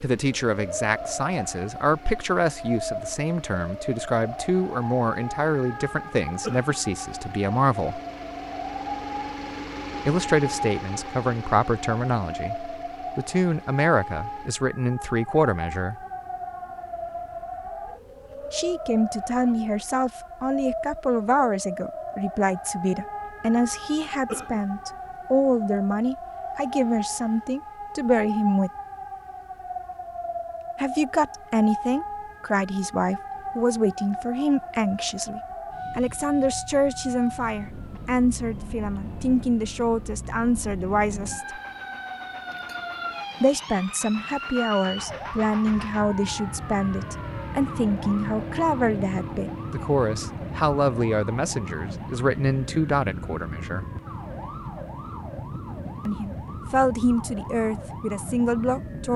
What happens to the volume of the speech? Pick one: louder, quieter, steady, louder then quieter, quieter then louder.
steady.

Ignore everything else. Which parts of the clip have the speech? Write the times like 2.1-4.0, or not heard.
0.0-8.0, 10.1-15.9, 18.5-28.7, 30.8-41.6, 43.4-53.9, 56.0-59.1.